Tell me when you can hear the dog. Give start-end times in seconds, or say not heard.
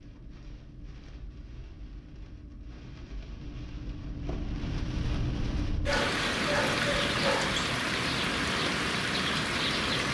5.8-7.7.